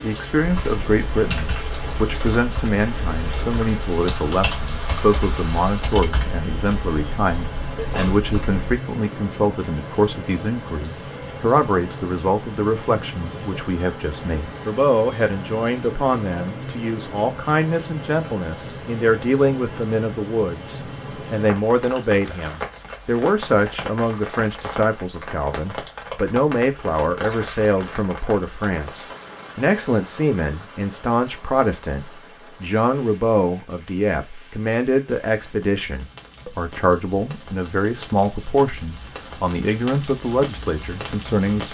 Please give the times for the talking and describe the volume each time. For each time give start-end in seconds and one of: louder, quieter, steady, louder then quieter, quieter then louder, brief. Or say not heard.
0.0-41.6 steady.